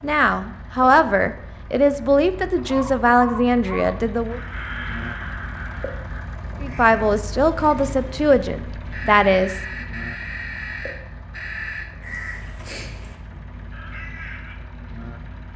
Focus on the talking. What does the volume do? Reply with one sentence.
The volume of the talking stays about the same.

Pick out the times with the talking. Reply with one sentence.
You can hear the talking from 0.0 to 4.4 s and from 6.6 to 9.6 s.